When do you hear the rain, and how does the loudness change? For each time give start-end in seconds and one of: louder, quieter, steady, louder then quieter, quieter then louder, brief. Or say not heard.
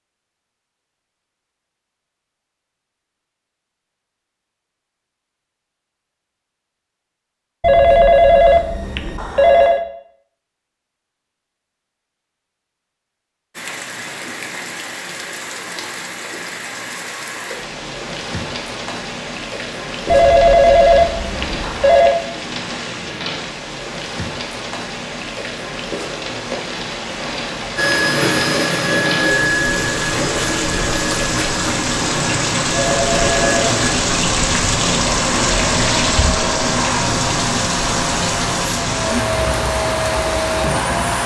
13.6-41.2 louder.